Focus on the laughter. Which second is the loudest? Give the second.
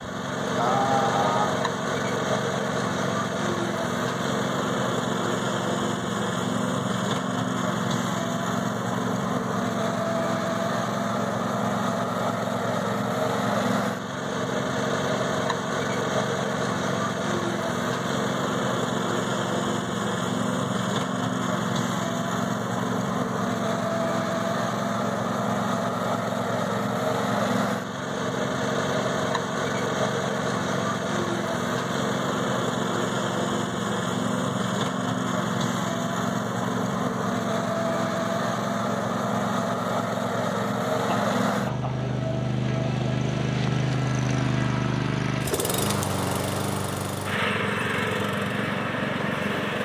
1 s.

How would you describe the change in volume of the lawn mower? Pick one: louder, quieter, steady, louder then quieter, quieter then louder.
steady.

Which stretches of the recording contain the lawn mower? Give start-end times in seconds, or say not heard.
0.0-49.7.